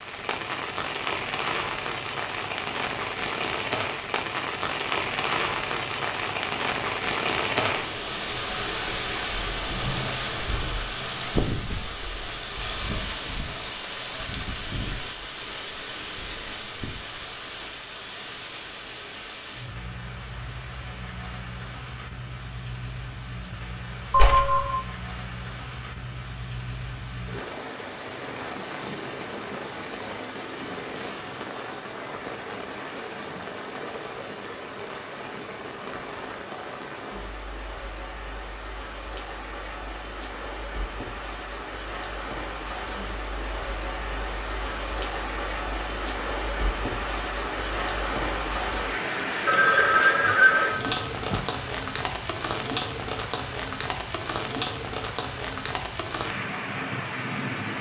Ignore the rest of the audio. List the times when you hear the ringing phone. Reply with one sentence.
You can hear the ringing phone from 24.1 to 24.8 s and from 49.5 to 51.4 s.